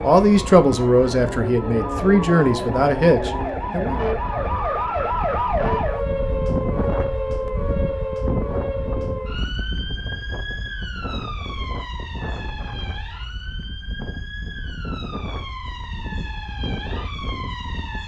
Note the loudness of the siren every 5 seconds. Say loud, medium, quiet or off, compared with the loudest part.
loud, loud, medium, medium.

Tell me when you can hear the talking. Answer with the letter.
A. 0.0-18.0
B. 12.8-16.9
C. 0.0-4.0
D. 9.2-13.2
C.